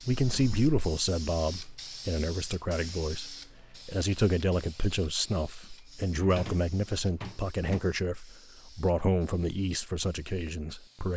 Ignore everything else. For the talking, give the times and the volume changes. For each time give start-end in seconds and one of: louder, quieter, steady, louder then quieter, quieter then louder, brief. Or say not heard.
0.1-11.1 steady.